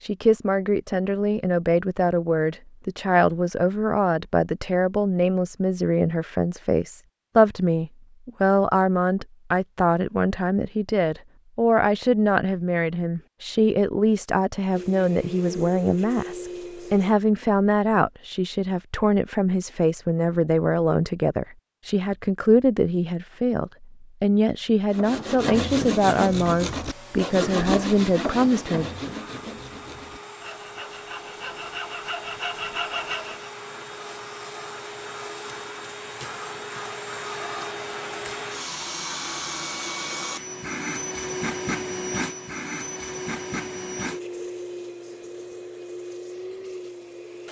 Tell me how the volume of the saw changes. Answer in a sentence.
The loudness of the saw goes down, then up.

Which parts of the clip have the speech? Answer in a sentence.
The speech can be heard from 0.0 to 28.9 s.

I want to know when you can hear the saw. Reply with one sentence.
The saw can be heard from 24.9 to 33.5 s.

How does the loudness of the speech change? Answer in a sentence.
The loudness of the speech stays about the same.